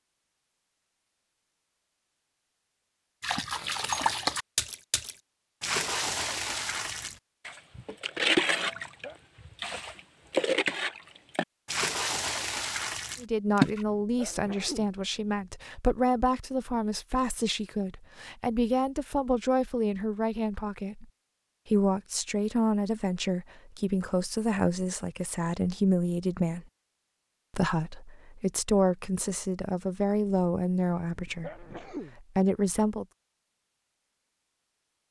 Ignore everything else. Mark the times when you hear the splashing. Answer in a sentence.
You can hear the splashing from 3.2 to 13.8 s.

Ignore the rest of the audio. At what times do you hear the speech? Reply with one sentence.
You can hear the speech from 13.2 to 21.1 s, from 21.6 to 26.6 s and from 27.5 to 33.0 s.